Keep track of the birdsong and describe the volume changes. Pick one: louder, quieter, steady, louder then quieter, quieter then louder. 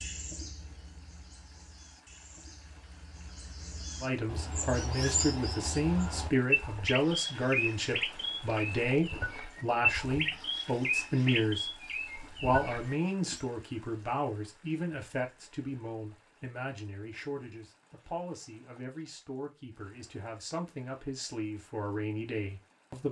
louder.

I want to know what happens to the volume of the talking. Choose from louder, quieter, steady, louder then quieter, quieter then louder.
quieter.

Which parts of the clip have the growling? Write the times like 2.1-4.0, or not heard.
not heard.